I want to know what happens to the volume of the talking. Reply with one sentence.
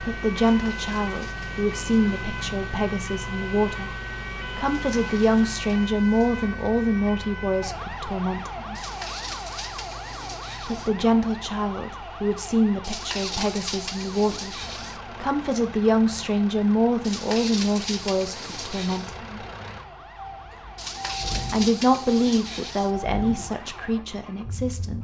The loudness of the talking stays about the same.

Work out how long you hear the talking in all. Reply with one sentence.
You can hear the talking for 21 seconds altogether.